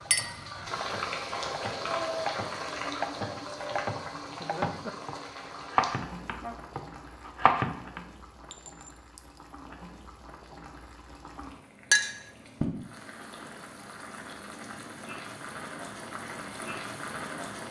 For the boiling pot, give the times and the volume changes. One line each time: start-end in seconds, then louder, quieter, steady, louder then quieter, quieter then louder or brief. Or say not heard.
0.0-17.6 quieter then louder.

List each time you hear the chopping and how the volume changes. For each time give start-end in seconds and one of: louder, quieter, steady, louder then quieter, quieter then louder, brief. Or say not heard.
0.0-8.0 louder.